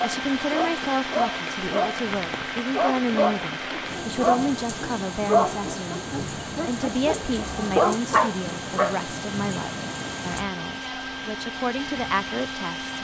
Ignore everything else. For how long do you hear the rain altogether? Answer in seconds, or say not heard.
13 s.